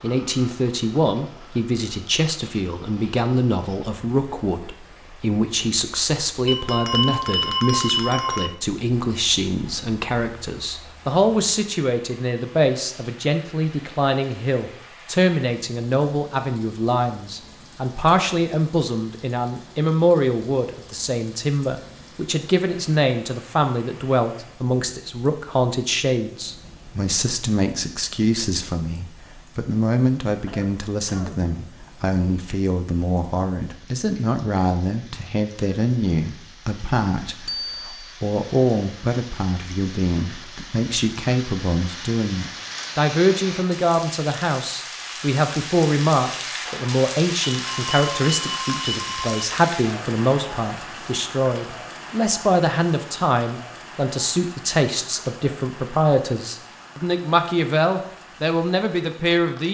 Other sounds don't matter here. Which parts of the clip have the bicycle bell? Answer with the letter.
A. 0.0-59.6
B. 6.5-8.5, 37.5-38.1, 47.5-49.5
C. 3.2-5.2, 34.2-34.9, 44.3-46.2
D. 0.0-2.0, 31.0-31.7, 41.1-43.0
B.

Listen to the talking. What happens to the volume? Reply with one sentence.
The loudness of the talking stays about the same.